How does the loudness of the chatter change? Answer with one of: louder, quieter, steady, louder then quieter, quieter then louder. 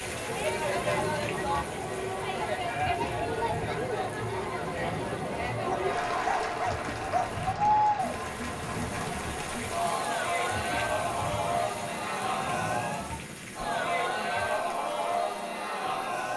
steady.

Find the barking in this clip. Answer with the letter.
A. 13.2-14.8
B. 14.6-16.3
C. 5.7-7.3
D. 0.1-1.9
C.